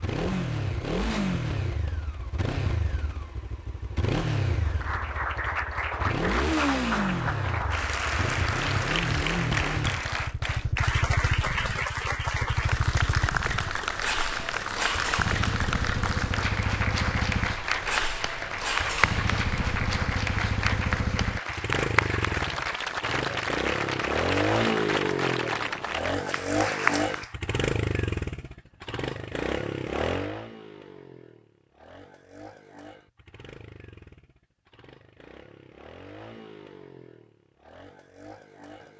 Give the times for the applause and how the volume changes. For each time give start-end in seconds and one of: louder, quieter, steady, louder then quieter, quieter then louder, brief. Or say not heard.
4.6-27.4 steady.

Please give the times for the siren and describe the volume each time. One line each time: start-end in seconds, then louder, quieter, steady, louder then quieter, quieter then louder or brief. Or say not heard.
not heard.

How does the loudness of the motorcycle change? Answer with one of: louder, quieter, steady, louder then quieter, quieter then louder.
quieter.